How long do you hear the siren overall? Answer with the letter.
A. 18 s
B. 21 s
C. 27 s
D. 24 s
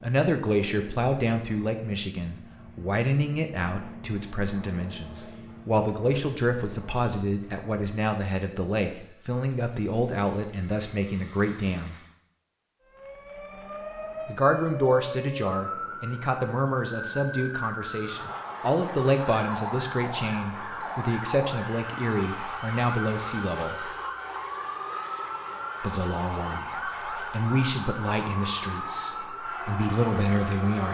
A.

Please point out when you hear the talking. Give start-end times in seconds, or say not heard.
0.0-11.9, 14.2-23.9, 25.8-30.8.